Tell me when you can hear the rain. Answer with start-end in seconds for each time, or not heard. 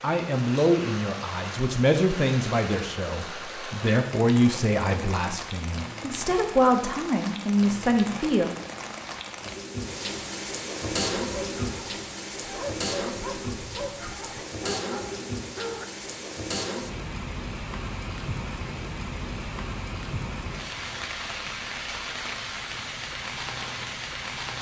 0.0-24.5.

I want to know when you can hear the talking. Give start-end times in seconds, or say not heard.
0.0-8.5.